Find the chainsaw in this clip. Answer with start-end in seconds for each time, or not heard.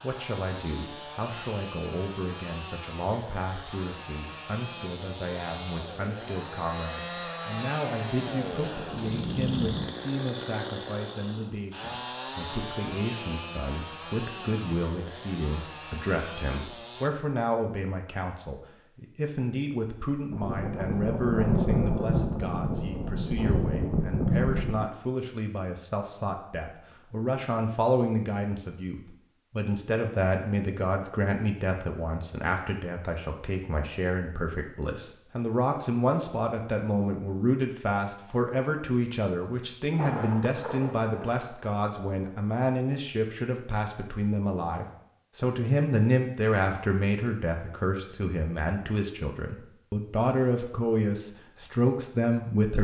0.0-17.1.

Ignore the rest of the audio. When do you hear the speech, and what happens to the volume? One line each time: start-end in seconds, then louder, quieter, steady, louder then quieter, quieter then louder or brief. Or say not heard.
0.0-52.7 louder.